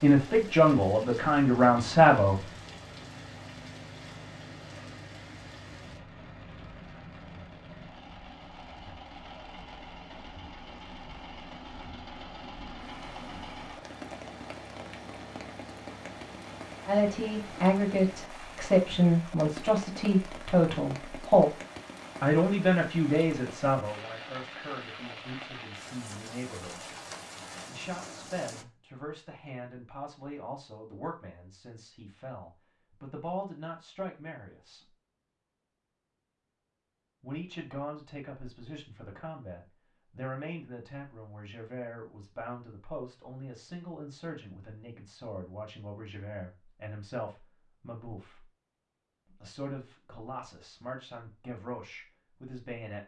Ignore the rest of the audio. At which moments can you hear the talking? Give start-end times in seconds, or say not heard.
0.0-2.5, 16.9-21.5, 22.2-26.9, 27.7-34.9, 37.2-48.5, 49.2-53.0.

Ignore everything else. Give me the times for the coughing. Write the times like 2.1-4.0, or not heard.
not heard.